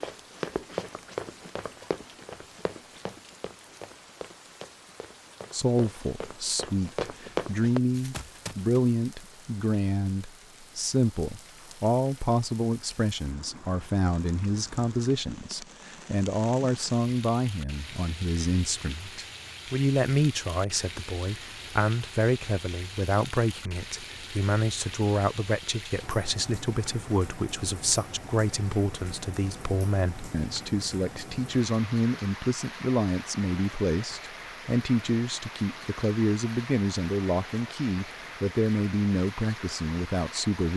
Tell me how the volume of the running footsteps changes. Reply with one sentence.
The loudness of the running footsteps goes down, then up.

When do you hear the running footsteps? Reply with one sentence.
You can hear the running footsteps from 0.0 to 8.8 s.